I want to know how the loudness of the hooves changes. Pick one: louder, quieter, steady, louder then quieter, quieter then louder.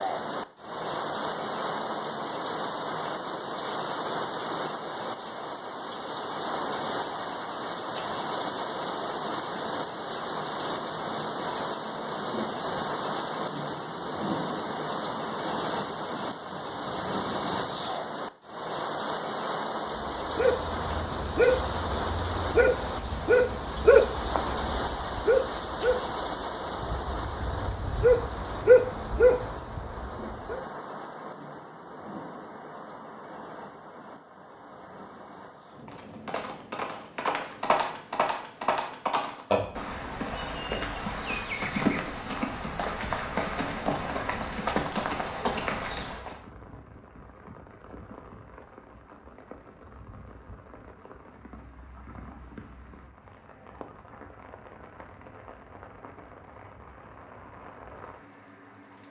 steady.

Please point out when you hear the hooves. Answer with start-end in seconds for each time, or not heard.
35.9-46.4.